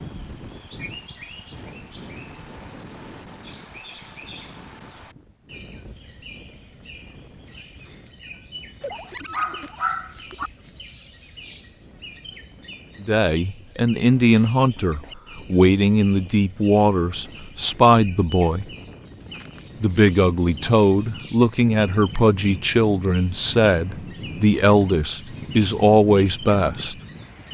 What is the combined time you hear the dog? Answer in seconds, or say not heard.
2 s.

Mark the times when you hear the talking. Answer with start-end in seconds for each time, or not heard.
13.0-18.6, 19.8-26.9.